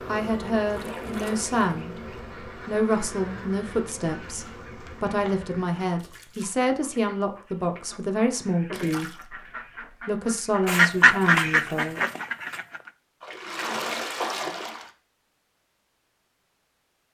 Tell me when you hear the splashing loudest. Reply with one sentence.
The loudest moment of the splashing is at 14 seconds.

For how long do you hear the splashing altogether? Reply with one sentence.
The splashing can be heard for 4 seconds in total.